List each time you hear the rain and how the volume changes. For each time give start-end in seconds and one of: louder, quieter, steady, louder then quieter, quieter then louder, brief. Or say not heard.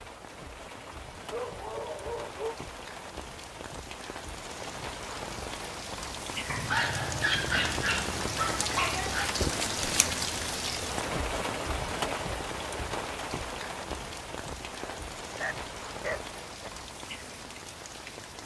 0.0-18.4 louder then quieter.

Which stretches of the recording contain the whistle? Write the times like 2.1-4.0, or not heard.
not heard.